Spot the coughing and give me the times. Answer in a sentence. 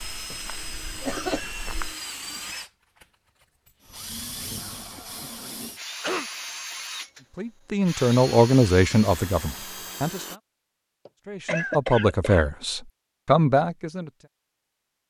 The coughing can be heard from 0.3 to 1.5 s, from 5.3 to 6.3 s and from 11.1 to 12.4 s.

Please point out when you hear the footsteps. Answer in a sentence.
The footsteps can be heard from 0.0 to 1.9 s.